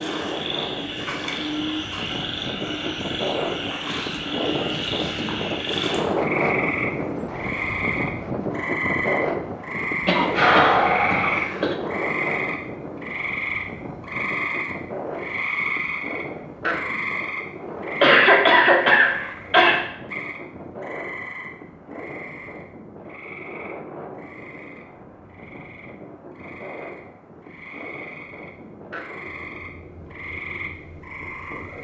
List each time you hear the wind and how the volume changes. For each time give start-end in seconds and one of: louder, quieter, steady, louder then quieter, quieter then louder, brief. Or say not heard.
0.0-31.7 quieter.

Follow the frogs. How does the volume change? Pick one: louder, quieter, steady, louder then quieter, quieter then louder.
quieter.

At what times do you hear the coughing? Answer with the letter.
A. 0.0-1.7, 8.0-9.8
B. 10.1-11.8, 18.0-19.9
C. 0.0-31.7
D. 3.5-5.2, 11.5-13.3
B.